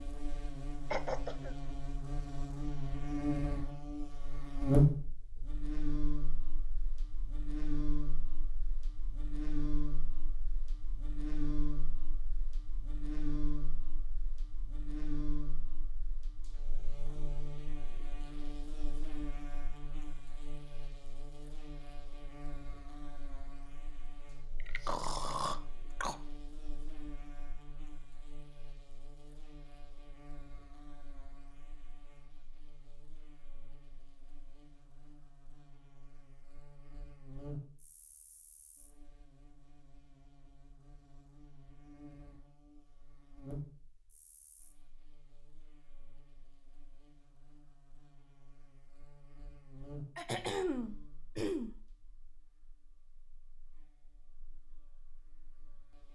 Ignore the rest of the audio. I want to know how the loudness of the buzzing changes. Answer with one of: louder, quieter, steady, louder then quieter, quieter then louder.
quieter.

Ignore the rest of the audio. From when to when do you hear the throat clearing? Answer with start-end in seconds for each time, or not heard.
0.9-1.6, 24.6-26.2, 50.1-51.8.